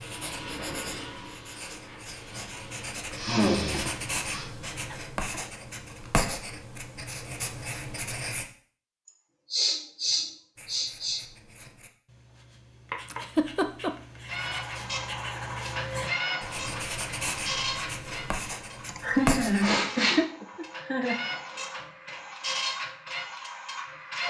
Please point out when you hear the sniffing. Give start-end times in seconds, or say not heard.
3.1-4.5, 9.5-11.2, 19.6-20.2.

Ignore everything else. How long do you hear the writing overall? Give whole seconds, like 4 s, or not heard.
18 s.